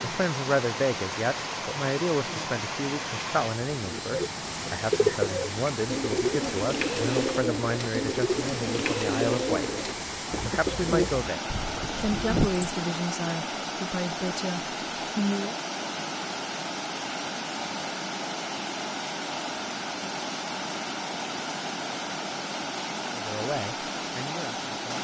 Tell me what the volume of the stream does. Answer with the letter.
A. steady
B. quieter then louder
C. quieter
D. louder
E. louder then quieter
A.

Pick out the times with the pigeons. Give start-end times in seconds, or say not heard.
3.8-12.7.